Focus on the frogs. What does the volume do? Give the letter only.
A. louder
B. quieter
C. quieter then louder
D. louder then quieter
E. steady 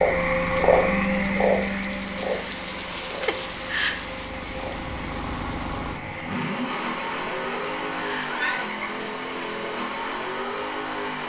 B.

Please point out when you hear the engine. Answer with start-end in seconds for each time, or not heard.
0.0-11.2.